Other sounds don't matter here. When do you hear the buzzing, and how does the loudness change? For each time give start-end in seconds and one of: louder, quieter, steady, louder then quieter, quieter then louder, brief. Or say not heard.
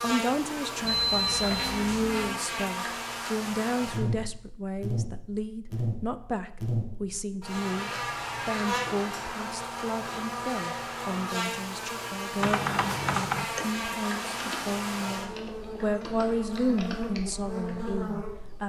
0.0-18.6 steady.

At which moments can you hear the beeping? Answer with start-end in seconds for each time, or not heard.
0.8-2.1.